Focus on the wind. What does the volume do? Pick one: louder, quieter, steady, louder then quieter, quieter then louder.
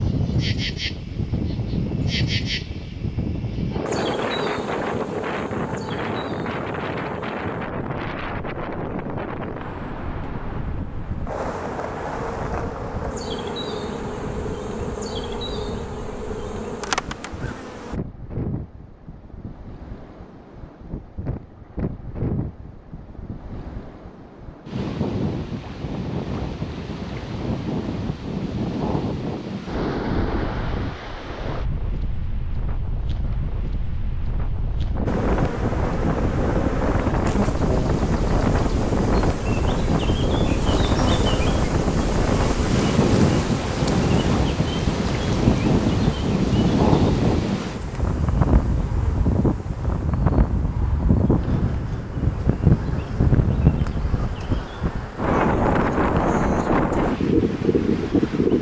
quieter then louder.